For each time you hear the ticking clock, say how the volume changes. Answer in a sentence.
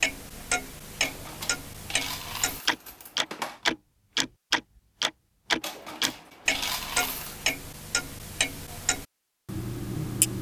The ticking clock can be heard from 0.0 to 10.3 s, getting louder then quieter.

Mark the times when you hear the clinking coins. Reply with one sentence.
You can hear the clinking coins from 1.0 to 3.6 s and from 5.6 to 7.5 s.